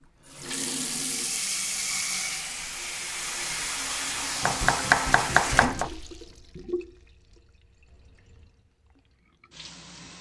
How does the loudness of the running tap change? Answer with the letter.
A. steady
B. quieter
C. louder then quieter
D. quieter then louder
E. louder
B.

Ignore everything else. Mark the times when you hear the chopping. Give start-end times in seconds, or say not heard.
4.4-5.9.